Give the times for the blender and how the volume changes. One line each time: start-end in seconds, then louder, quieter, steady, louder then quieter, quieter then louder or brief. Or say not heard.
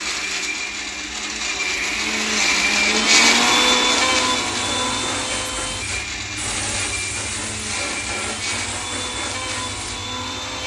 0.0-10.6 louder then quieter.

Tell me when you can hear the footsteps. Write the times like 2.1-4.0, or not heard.
not heard.